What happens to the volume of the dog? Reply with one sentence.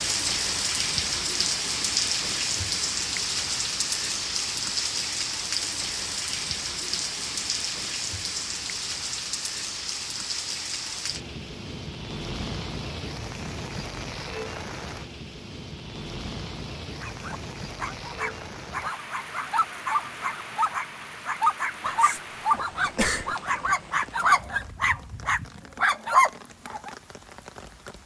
The volume of the dog goes up.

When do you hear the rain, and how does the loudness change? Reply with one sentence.
The rain can be heard from 0.0 to 28.0 s, getting quieter.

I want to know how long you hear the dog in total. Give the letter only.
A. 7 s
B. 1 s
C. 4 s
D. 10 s
D.